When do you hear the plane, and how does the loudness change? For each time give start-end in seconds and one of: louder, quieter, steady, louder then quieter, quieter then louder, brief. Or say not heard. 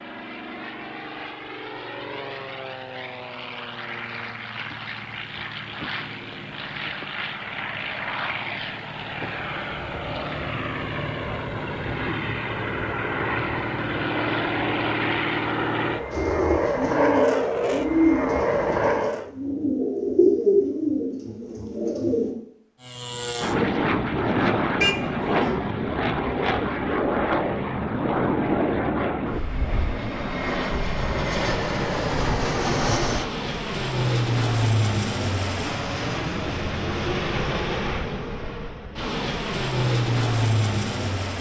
0.0-19.3 louder
22.8-41.3 steady.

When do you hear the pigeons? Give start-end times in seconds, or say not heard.
16.1-22.4.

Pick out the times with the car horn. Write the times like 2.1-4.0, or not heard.
24.8-25.6.